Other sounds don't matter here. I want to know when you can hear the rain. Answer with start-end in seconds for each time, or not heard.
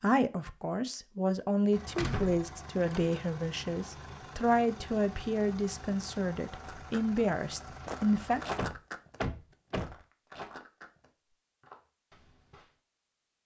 not heard.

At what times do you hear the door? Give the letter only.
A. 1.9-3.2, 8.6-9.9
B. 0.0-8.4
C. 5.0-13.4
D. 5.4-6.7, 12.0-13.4
A.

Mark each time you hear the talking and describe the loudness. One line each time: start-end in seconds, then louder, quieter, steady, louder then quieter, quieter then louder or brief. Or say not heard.
0.0-8.4 steady.